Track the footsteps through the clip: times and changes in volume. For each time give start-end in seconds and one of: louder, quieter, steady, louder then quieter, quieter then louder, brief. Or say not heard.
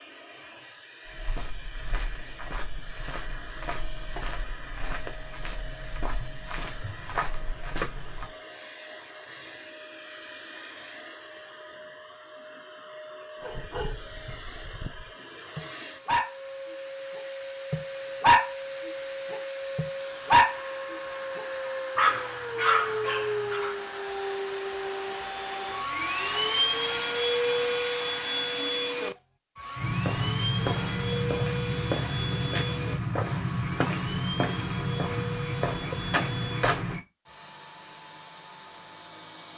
1.1-8.3 louder
29.8-37.0 steady.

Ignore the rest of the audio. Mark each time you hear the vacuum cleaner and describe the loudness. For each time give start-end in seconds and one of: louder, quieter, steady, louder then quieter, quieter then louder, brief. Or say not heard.
0.0-39.5 louder then quieter.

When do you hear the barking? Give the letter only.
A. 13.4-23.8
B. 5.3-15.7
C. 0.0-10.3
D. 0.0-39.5
A.